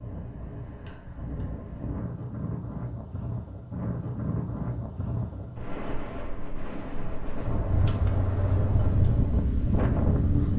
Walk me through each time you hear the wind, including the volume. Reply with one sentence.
The wind can be heard from 0.0 to 10.5 s, getting louder.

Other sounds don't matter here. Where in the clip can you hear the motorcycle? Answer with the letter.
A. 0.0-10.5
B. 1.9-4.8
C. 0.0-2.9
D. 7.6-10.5
D.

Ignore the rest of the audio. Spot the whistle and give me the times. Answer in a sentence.
You can't hear the whistle here.